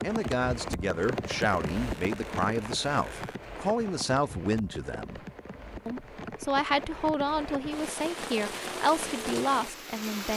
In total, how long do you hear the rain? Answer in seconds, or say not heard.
10 s.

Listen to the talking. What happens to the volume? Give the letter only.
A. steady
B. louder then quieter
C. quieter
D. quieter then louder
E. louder
A.